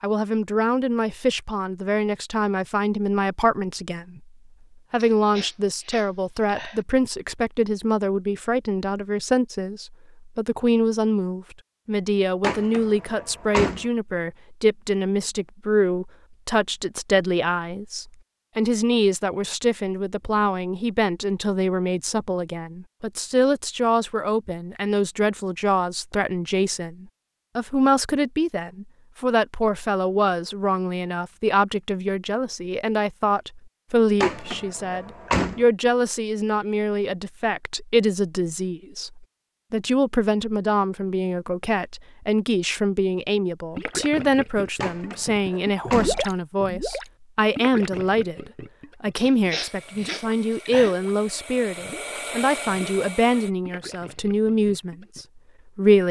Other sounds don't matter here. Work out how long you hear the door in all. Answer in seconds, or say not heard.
4 s.